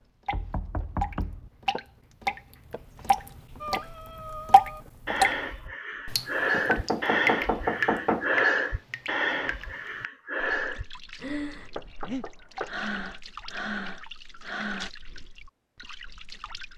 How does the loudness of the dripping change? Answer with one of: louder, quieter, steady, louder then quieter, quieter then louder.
quieter.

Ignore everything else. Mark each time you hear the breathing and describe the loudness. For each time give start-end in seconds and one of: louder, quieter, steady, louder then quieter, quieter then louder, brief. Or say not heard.
3.6-14.9 louder then quieter.